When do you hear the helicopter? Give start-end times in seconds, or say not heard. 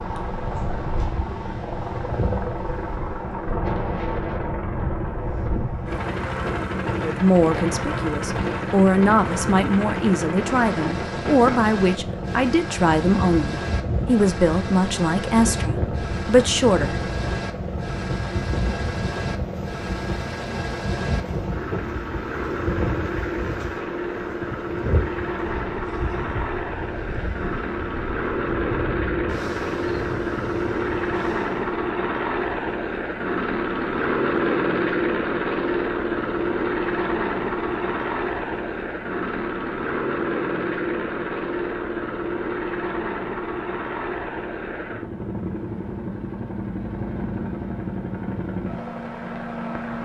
0.0-50.0.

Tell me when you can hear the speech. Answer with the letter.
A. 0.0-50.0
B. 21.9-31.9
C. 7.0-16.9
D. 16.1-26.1
C.